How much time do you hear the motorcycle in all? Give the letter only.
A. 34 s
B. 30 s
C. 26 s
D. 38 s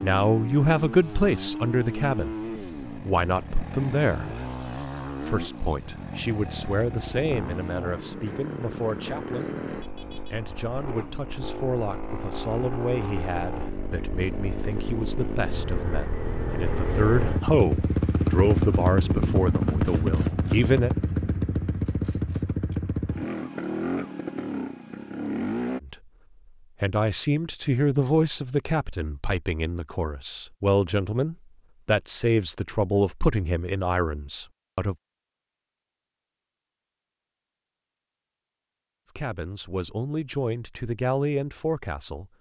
C.